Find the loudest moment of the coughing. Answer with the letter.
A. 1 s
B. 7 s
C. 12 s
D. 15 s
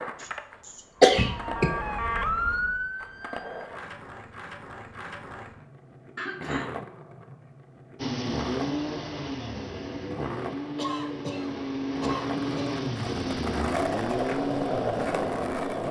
A.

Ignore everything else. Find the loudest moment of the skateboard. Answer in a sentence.
The volume of the skateboard peaks at 15 seconds.